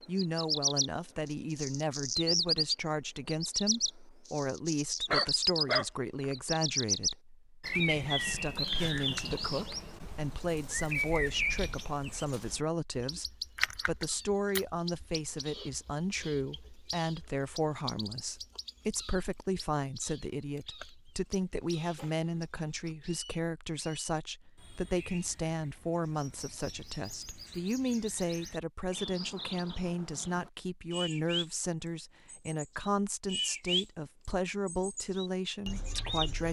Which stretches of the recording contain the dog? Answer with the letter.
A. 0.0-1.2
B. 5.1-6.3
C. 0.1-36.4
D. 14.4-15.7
B.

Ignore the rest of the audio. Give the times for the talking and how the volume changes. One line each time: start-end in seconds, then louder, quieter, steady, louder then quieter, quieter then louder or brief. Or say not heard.
0.1-36.4 steady.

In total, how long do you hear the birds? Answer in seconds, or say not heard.
35 s.